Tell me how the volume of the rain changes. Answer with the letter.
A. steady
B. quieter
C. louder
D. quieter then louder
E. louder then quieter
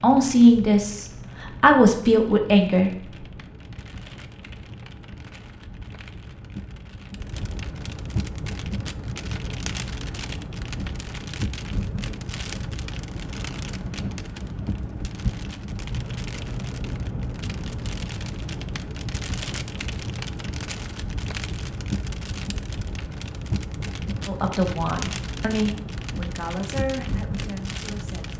C.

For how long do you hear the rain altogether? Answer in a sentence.
You can hear the rain for 28 seconds altogether.